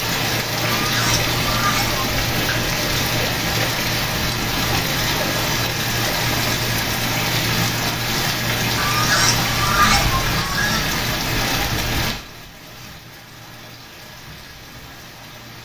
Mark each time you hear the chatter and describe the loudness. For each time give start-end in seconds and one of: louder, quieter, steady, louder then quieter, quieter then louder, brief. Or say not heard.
not heard.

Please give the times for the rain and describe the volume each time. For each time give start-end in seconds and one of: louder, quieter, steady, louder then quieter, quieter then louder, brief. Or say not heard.
0.0-15.6 quieter.